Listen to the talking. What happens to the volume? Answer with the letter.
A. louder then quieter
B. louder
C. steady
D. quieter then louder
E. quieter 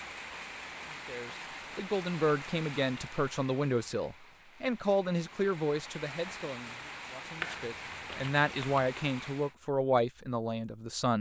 C.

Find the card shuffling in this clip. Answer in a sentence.
The card shuffling can be heard from 7.4 to 8.8 s.